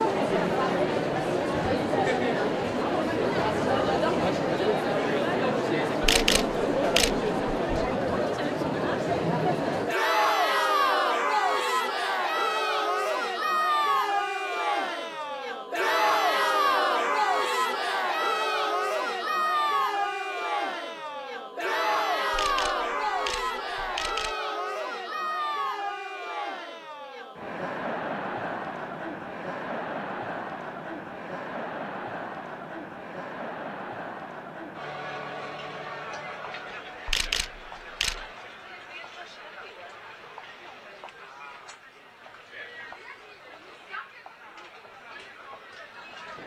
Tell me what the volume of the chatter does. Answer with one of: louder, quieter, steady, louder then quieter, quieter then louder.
quieter.